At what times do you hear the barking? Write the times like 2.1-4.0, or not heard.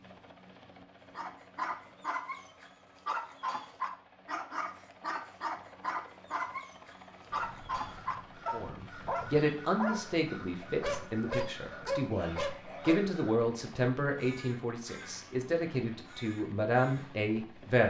1.1-13.1.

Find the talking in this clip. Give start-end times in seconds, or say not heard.
8.5-17.8.